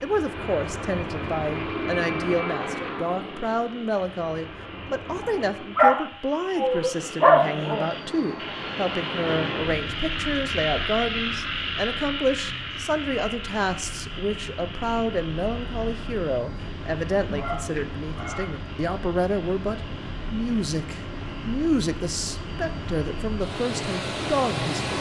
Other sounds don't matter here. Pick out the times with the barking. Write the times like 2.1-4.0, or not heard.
5.1-7.8, 17.3-18.6.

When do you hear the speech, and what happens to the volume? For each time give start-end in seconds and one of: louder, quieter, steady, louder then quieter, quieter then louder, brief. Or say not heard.
0.0-24.9 steady.